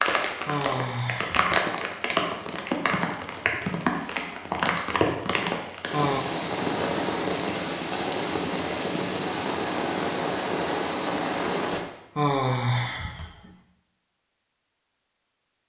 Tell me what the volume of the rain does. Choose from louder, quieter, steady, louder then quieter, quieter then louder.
steady.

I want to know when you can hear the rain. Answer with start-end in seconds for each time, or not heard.
0.0-11.8.